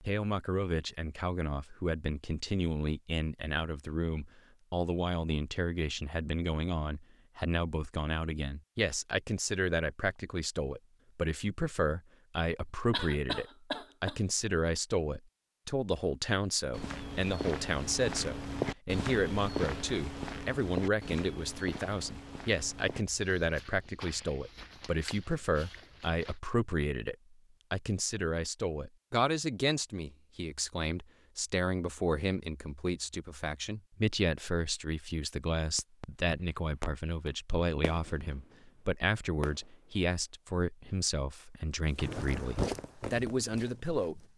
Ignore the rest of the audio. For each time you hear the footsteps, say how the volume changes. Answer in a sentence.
The footsteps can be heard from 16.7 to 26.4 s, getting quieter; and briefly from 41.9 to 44.3 s.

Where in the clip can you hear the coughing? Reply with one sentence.
You can hear the coughing from 12.9 to 14.2 s.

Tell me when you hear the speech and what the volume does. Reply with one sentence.
You can hear the speech from 0.0 to 44.2 s, at a steady volume.